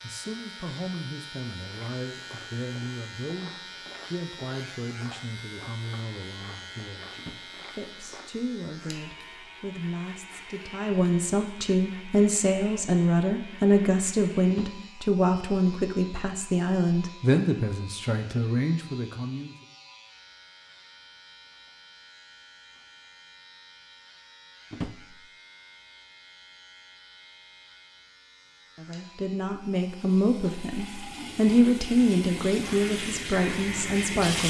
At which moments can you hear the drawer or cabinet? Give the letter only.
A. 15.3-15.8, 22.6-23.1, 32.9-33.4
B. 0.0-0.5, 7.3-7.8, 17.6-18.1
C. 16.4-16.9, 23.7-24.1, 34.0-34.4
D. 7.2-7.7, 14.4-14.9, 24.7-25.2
D.